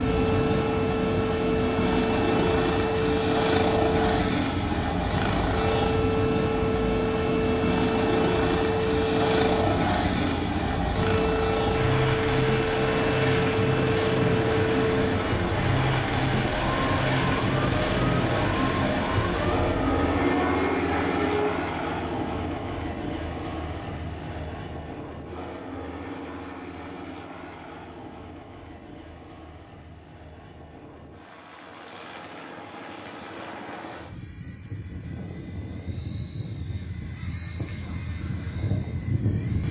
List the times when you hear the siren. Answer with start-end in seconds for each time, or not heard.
0.0-21.5.